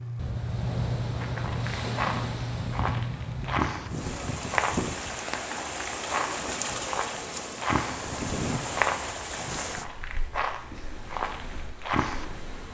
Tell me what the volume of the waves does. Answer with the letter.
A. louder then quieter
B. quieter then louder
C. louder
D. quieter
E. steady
D.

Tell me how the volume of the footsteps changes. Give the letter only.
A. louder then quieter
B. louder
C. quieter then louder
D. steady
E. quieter
D.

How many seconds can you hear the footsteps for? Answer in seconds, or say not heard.
11 s.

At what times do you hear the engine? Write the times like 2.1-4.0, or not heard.
0.0-3.5.